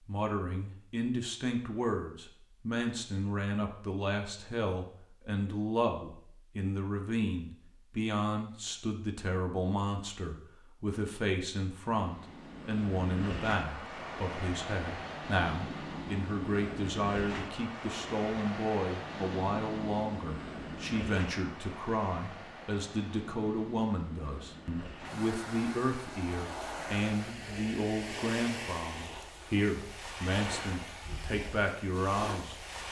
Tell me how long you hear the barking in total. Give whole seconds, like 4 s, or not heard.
not heard.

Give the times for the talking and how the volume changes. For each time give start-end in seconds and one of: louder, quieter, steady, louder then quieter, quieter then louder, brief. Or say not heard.
0.1-32.8 steady.